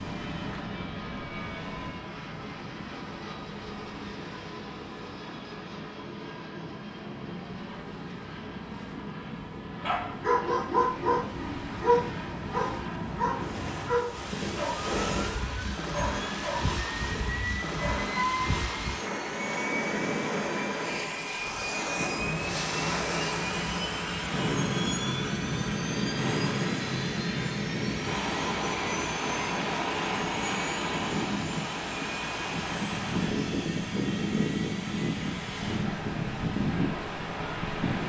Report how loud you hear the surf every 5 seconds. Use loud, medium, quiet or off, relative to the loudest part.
medium, quiet, medium, loud, loud, loud, loud, loud.